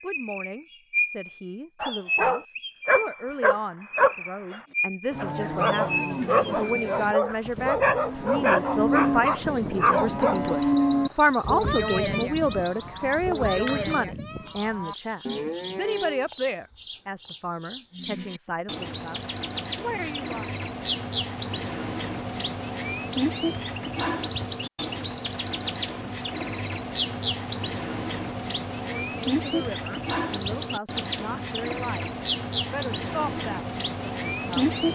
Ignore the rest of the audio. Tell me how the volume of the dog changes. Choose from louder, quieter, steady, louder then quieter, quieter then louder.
steady.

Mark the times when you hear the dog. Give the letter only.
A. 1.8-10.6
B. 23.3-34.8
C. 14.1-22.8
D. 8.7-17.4
A.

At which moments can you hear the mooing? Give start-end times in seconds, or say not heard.
4.7-16.2.